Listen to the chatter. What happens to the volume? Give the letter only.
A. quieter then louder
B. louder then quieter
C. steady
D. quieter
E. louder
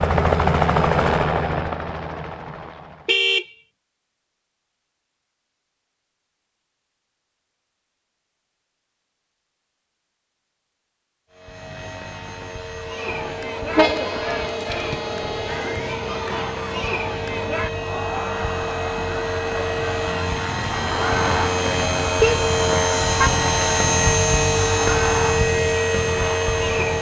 C.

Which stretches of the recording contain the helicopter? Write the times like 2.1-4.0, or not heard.
0.0-3.2, 11.3-26.9.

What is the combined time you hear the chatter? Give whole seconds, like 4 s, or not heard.
14 s.